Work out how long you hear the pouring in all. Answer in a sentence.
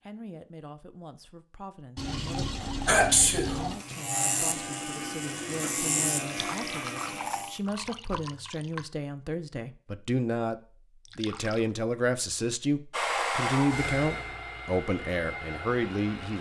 You can hear the pouring for 5 seconds altogether.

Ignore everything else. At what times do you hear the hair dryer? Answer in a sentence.
The hair dryer can be heard from 12.9 to 16.3 s.